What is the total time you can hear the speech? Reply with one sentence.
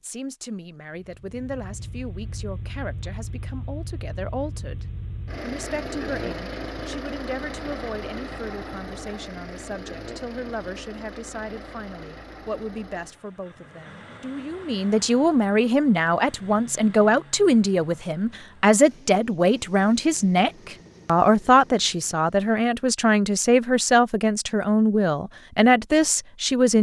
You can hear the speech for 27 seconds altogether.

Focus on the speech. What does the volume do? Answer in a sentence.
The loudness of the speech goes up.